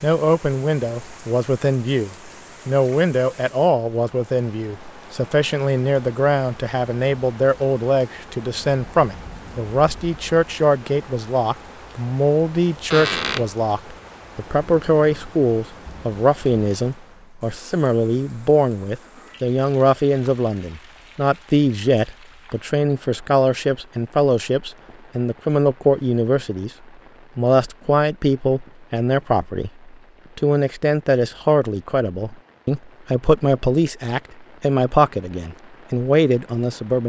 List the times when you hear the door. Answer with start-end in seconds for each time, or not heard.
12.9-13.5.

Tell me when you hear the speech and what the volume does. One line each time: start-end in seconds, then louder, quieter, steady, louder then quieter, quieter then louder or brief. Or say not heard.
0.0-26.7 steady
27.4-37.0 steady.